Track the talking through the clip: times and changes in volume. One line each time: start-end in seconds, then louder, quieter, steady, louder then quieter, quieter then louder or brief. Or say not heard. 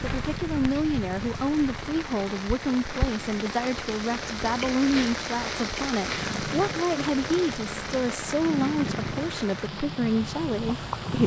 0.1-11.2 steady.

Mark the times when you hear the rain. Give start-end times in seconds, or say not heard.
0.0-11.2.